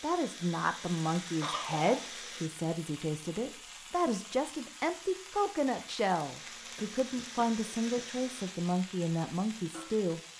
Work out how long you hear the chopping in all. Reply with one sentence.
You can't hear the chopping here.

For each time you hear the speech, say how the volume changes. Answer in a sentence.
You can hear the speech from 0.0 to 10.2 s, at a steady volume.